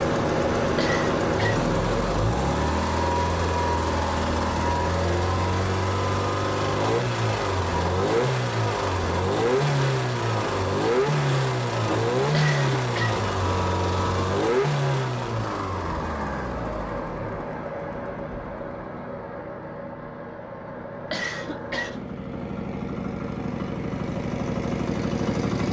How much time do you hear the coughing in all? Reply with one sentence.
You can hear the coughing for 3 seconds altogether.